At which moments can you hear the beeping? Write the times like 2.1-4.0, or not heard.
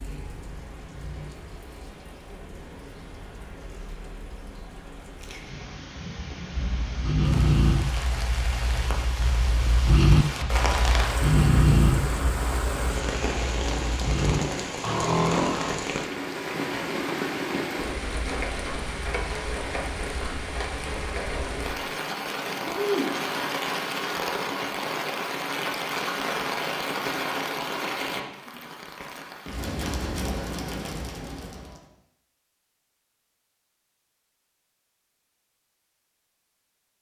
not heard.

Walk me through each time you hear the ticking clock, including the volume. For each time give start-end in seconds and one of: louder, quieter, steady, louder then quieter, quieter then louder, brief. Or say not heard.
not heard.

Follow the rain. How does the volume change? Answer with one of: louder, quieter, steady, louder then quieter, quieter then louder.
louder.